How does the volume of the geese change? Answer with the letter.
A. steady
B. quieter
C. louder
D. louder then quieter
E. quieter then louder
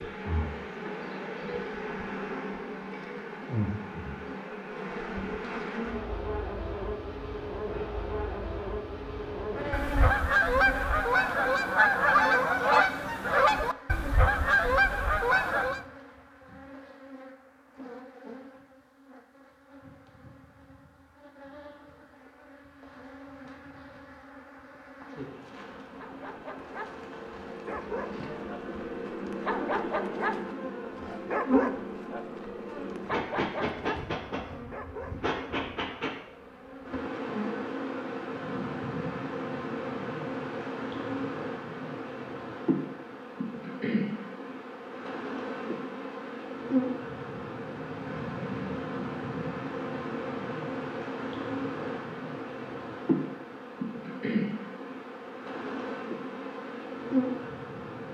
A.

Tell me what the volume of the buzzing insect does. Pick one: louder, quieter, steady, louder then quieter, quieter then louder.
quieter then louder.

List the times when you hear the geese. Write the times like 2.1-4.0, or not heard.
9.7-15.8.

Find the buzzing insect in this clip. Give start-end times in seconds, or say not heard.
0.0-58.0.